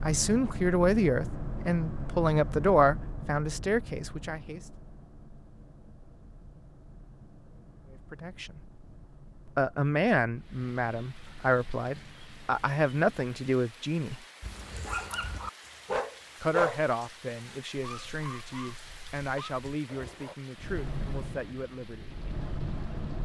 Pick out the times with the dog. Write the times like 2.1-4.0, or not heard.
14.4-20.4.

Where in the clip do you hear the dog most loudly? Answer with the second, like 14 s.
17 s.